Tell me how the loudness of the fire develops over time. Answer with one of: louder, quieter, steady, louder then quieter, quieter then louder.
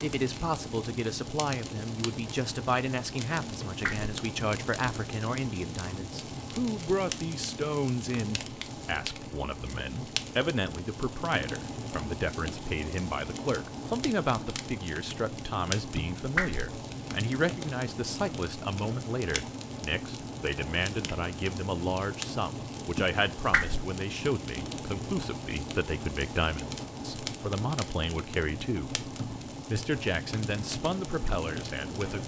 steady.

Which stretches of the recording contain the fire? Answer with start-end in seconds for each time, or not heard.
0.0-32.2.